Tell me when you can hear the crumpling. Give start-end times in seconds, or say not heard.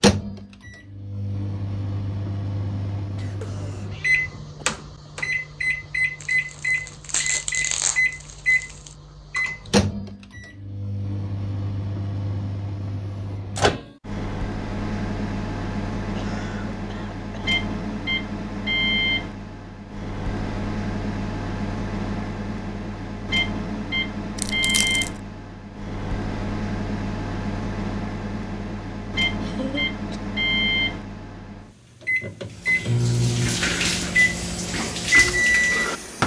6.2-8.9, 24.4-25.2.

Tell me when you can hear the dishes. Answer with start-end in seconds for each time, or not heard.
not heard.